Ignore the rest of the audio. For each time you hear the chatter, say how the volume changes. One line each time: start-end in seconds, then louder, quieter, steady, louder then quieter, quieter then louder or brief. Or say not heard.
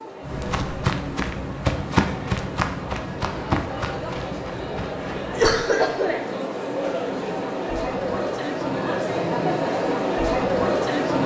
0.0-11.2 louder.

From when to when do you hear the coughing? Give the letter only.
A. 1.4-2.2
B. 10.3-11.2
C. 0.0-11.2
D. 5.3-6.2
D.